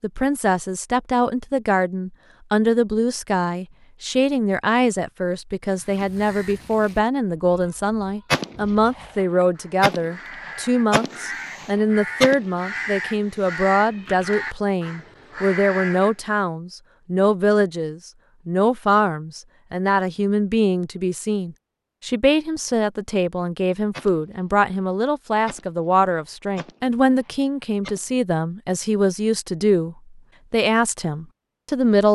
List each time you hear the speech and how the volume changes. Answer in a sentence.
You can hear the speech from 0.0 to 32.0 s, at a steady volume.